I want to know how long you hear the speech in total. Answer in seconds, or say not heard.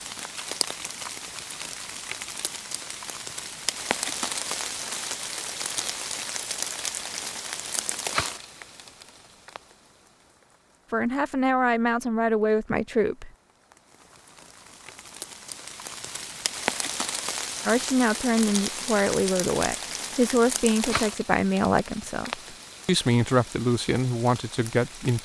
10 s.